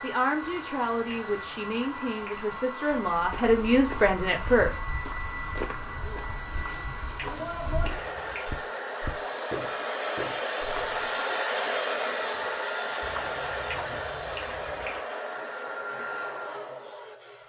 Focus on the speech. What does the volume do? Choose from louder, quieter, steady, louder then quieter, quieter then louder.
louder.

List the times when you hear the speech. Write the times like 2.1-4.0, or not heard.
0.0-4.8.